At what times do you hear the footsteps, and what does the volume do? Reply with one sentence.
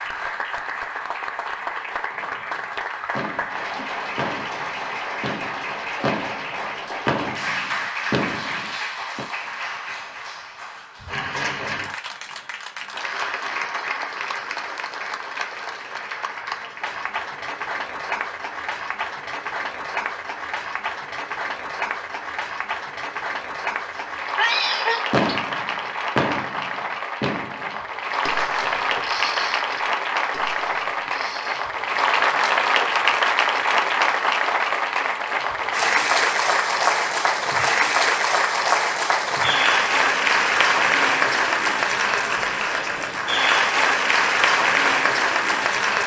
You can't hear the footsteps here.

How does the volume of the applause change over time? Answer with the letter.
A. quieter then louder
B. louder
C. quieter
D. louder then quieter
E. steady
B.